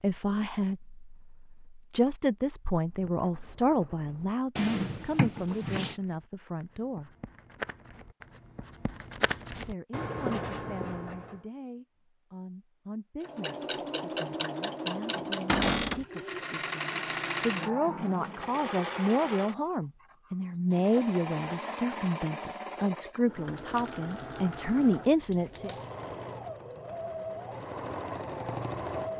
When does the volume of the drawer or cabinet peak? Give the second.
16 s.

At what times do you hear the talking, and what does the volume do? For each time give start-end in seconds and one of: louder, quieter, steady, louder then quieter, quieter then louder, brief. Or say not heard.
0.0-7.2 louder then quieter
9.7-25.8 louder.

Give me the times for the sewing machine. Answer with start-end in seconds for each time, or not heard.
13.2-29.1.